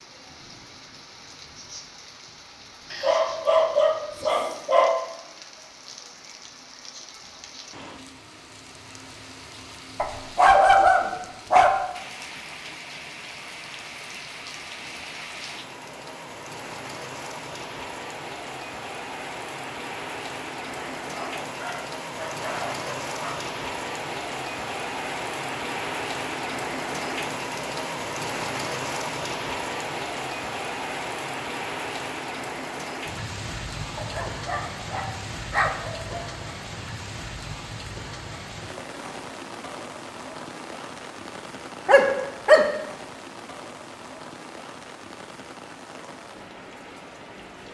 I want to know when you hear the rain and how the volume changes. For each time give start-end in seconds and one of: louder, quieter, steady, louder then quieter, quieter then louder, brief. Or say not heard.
0.0-47.6 louder then quieter.